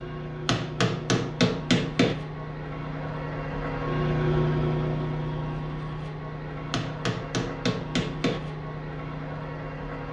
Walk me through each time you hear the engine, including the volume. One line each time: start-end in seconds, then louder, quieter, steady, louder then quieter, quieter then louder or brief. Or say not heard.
0.0-10.0 louder then quieter.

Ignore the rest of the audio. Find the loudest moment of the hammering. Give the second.
2 s.